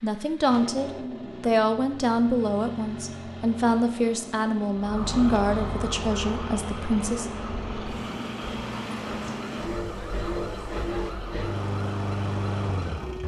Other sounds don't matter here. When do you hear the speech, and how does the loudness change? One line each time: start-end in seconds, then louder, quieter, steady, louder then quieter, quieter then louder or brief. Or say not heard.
0.0-7.2 quieter.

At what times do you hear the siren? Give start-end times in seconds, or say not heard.
4.8-13.2.